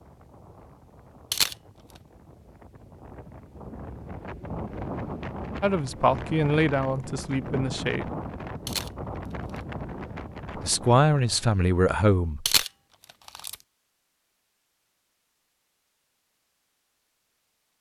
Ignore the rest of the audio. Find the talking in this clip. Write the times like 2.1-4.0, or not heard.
5.6-8.1, 10.6-12.4.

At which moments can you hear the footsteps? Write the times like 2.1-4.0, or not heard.
not heard.